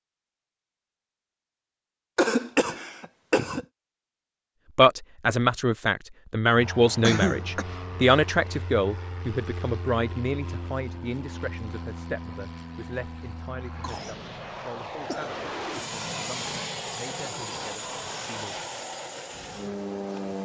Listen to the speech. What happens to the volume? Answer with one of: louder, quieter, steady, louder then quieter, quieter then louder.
quieter.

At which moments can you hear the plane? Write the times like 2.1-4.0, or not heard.
6.5-20.4.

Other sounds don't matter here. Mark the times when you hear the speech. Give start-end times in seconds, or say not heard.
4.8-18.6.